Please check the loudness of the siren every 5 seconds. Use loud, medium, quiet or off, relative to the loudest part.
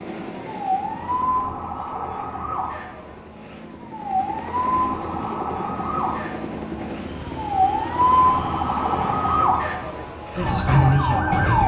medium, loud, loud.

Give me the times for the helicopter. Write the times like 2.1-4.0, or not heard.
0.0-9.5.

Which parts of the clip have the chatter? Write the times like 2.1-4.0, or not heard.
not heard.